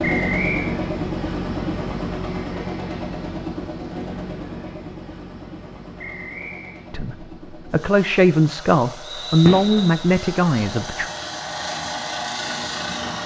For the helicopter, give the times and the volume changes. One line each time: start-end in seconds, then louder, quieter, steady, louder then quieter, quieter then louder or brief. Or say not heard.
0.0-13.2 quieter then louder.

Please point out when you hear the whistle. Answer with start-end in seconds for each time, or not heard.
0.0-0.8, 6.0-6.8, 9.1-10.1.